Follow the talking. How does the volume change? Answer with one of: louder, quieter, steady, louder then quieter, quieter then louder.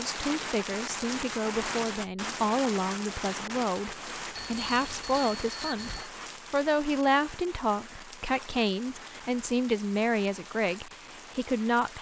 steady.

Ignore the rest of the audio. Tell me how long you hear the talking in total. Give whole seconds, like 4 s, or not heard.
12 s.